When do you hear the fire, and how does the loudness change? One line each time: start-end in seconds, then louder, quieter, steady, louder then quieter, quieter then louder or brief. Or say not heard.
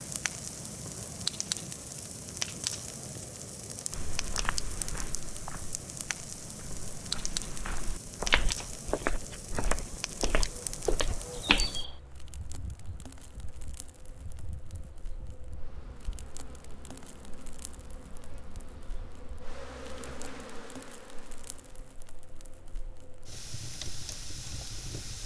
0.0-25.2 quieter then louder.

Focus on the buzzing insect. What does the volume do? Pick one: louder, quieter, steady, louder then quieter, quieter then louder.
quieter then louder.